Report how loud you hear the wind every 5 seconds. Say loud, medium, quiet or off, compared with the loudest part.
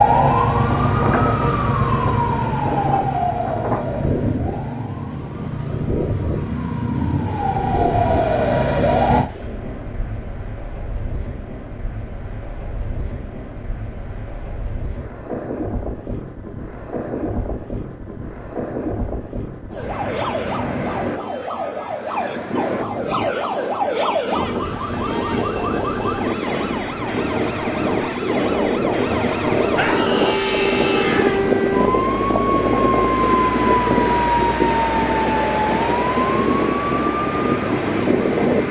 medium, medium, quiet, medium, medium, loud, loud, loud.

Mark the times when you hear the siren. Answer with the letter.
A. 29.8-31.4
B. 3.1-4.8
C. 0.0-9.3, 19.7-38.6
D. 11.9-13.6
C.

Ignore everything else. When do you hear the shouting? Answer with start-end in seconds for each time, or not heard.
29.8-31.4.